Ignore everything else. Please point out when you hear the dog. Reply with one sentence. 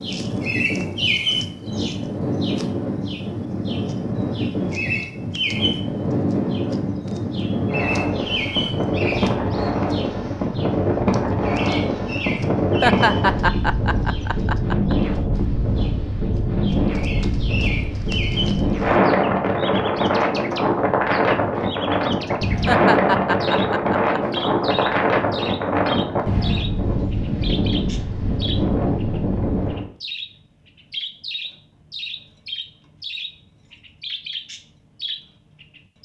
The dog can't be heard in this clip.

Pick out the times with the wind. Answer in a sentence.
The wind can be heard from 0.0 to 29.9 s.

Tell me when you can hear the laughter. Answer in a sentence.
The laughter can be heard from 12.8 to 14.9 s and from 22.6 to 24.4 s.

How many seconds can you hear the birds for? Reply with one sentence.
You can hear the birds for 36 seconds altogether.